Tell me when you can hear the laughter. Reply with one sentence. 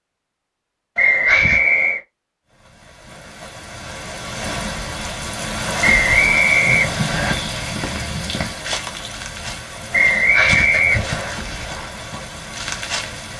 The laughter can be heard from 0.9 to 1.6 s and from 10.2 to 11.3 s.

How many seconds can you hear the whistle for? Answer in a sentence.
You can hear the whistle for 4 seconds altogether.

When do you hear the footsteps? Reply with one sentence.
The footsteps can be heard from 6.6 to 13.3 s.